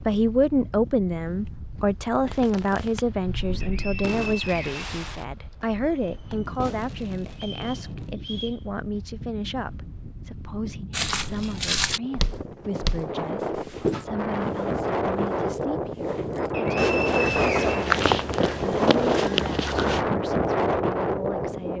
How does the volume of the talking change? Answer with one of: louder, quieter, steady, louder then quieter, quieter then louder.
quieter.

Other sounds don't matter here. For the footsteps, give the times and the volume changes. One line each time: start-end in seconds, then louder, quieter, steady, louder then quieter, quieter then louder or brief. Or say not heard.
10.9-20.1 quieter then louder.